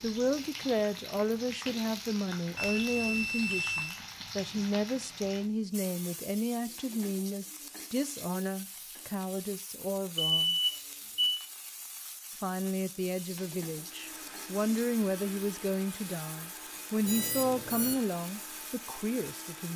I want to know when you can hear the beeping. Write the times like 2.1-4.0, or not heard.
2.5-4.0, 10.3-11.4, 17.1-17.9.